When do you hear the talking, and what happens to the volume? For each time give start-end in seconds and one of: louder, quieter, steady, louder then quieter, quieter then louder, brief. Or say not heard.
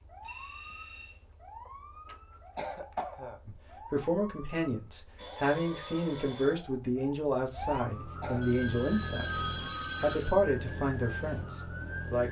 3.5-12.2 steady.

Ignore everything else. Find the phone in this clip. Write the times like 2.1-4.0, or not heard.
0.2-1.2, 5.2-6.7, 8.4-10.4.